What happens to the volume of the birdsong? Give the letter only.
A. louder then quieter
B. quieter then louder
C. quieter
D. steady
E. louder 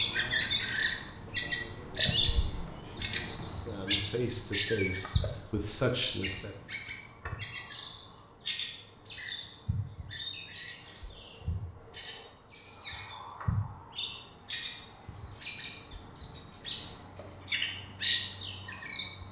B.